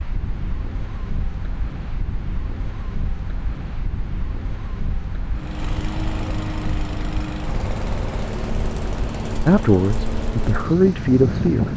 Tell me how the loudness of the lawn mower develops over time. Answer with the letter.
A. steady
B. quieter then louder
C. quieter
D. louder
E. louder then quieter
A.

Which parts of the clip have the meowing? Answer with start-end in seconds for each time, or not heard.
not heard.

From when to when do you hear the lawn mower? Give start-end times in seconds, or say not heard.
5.3-11.7.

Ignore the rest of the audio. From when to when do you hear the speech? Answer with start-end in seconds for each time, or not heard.
9.4-11.7.